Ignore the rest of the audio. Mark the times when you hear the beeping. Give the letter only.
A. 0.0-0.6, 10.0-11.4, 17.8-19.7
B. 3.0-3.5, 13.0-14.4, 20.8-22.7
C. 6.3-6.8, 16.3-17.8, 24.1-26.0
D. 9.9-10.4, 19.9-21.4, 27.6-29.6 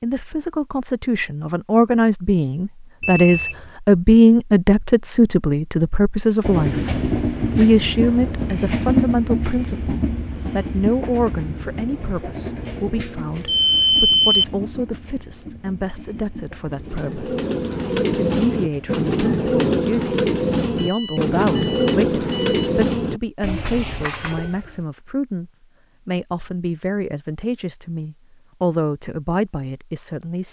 B.